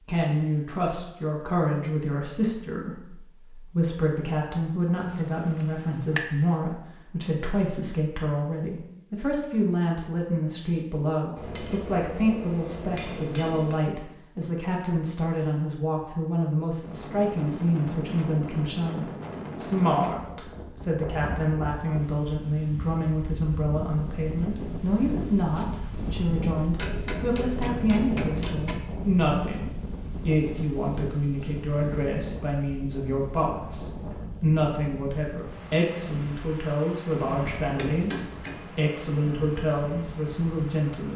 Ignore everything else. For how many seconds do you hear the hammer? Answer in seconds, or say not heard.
7 s.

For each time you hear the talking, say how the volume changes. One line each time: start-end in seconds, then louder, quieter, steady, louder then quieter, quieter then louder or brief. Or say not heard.
0.1-41.1 steady.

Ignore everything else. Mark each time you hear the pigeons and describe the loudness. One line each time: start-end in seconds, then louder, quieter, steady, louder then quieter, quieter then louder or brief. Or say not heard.
not heard.